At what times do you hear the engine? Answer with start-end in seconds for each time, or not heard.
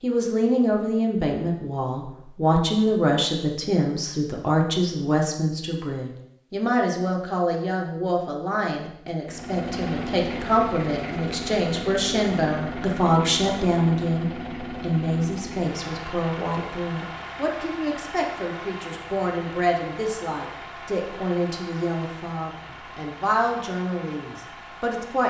9.2-25.2.